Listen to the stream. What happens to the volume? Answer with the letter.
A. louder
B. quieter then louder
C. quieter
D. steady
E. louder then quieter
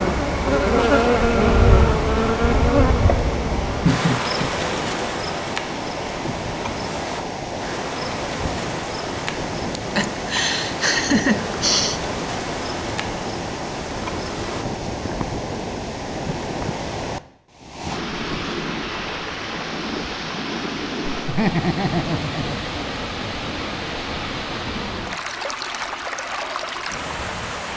D.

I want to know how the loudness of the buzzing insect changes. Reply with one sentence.
The loudness of the buzzing insect goes down.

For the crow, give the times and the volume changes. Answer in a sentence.
The crow can't be heard in this clip.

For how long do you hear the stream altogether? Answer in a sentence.
You can hear the stream for 28 seconds altogether.